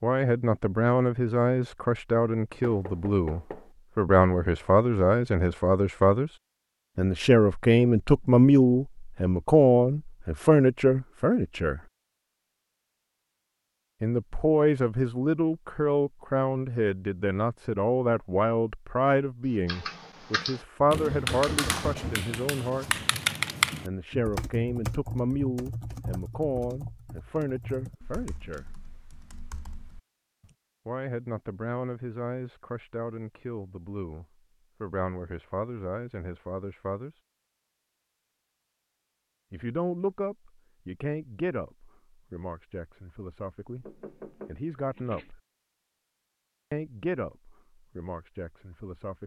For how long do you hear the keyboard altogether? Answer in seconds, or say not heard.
11 s.